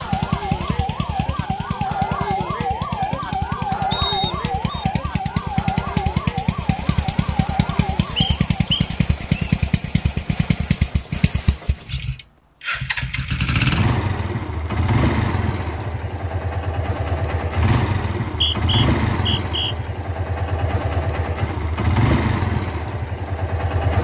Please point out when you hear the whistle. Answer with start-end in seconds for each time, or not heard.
3.9-4.8, 8.2-9.6, 18.2-19.8.